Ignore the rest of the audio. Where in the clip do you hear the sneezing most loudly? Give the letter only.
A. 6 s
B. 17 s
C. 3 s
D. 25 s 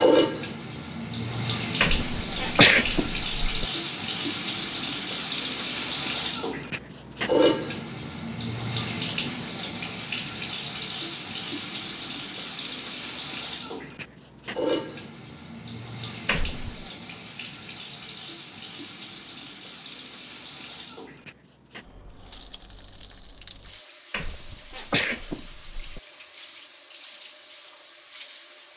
C.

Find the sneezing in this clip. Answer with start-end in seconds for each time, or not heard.
1.8-3.6, 16.2-16.9, 24.1-26.0.